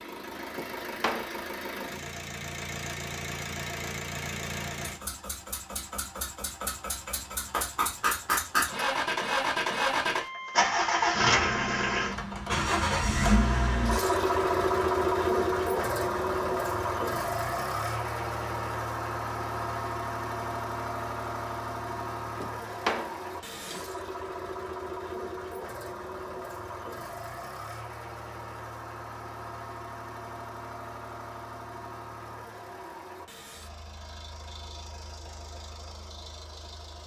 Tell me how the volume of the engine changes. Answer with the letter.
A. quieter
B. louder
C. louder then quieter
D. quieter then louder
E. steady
C.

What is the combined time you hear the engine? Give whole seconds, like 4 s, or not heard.
37 s.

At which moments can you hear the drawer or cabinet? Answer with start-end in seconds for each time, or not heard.
0.6-1.4, 22.4-23.9.